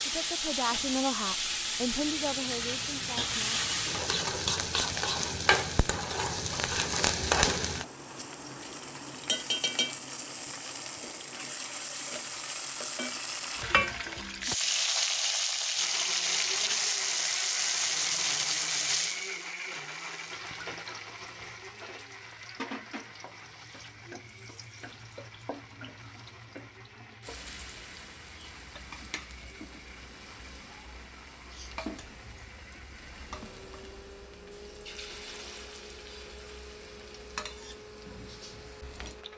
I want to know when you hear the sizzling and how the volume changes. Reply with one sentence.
You can hear the sizzling from 0.0 to 39.3 s, getting quieter.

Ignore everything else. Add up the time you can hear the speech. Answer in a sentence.
You can hear the speech for 4 seconds altogether.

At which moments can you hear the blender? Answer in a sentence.
The blender can be heard from 15.8 to 39.3 s.